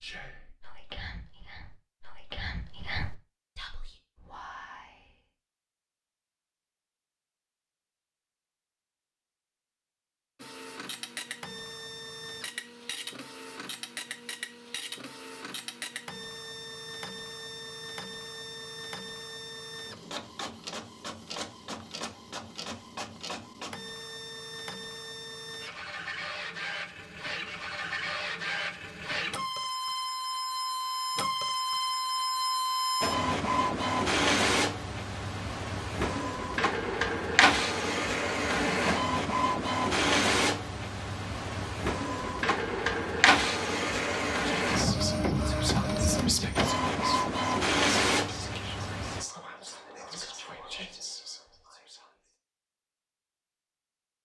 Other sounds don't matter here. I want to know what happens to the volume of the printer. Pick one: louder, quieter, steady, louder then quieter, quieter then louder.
louder.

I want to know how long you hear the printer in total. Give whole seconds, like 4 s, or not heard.
39 s.